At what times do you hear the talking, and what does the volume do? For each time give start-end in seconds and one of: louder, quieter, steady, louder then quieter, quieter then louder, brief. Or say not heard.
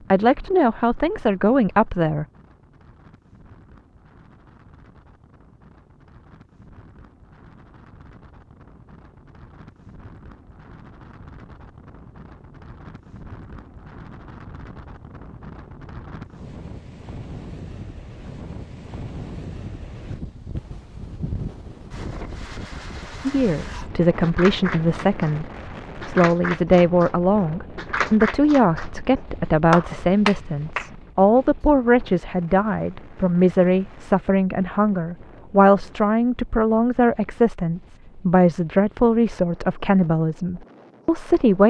0.1-2.2 brief
23.2-41.6 steady.